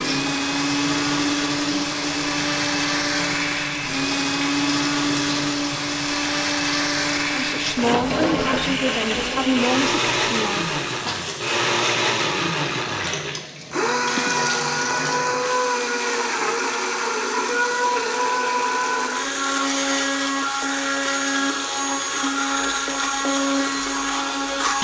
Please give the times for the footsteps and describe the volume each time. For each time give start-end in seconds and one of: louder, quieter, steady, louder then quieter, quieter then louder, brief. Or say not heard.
not heard.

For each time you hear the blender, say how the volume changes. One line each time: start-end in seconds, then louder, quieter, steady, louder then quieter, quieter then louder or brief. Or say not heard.
0.0-24.8 steady.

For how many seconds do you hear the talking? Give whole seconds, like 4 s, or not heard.
4 s.